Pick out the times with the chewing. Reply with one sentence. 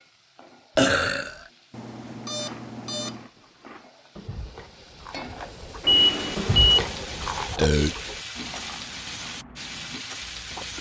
The chewing can be heard from 2.5 to 10.7 s.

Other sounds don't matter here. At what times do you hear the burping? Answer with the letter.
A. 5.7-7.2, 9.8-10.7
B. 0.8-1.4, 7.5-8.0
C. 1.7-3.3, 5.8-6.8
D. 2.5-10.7
B.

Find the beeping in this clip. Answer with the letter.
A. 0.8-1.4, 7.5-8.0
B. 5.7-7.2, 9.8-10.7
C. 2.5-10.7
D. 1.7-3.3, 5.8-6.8
D.